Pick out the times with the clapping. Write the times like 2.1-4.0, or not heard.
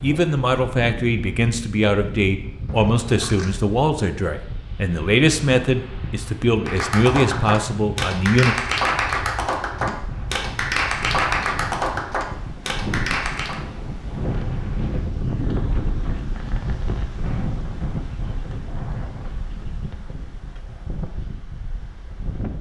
6.7-13.6.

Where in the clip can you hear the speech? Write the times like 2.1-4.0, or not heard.
0.0-8.6.